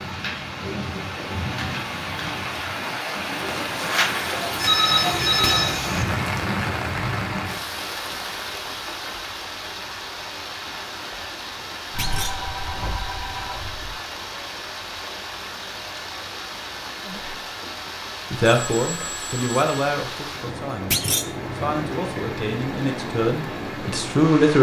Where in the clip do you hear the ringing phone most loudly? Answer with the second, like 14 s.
5 s.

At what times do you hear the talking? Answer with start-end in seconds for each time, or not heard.
18.3-24.5.